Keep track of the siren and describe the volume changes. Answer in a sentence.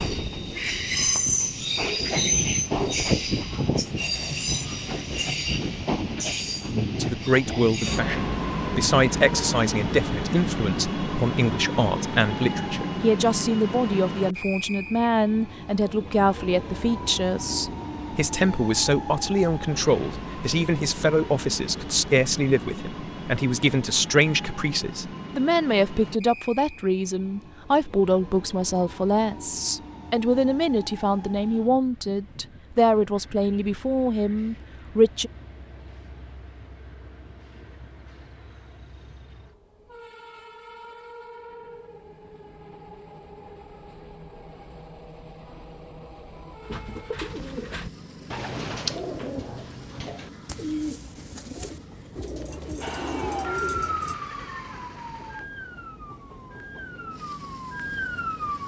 The loudness of the siren goes down, then up.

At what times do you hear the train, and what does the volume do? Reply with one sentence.
The train can be heard from 0.0 to 58.6 s, getting quieter.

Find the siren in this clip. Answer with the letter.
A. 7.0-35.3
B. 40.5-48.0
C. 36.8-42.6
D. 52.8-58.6
D.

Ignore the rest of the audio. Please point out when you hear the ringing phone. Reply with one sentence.
You can't hear the ringing phone here.